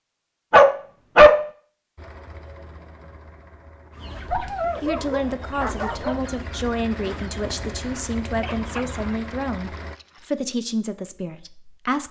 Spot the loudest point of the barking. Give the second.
1 s.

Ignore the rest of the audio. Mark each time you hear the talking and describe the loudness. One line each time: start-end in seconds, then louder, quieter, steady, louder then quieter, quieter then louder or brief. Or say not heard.
4.8-12.0 steady.